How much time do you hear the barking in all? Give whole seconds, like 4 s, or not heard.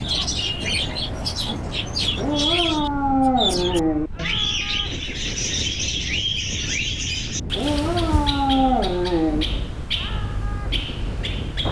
4 s.